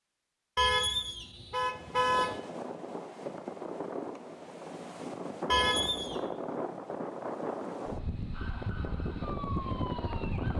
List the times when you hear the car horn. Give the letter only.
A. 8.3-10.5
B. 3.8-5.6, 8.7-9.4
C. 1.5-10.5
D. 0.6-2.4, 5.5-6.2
D.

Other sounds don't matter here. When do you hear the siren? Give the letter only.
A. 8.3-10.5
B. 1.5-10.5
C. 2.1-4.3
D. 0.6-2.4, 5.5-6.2
A.